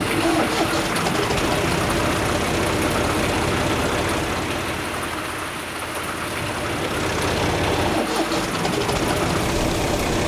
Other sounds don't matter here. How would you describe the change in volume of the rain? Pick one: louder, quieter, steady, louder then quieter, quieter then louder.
steady.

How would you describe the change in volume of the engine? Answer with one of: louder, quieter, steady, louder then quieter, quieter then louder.
quieter then louder.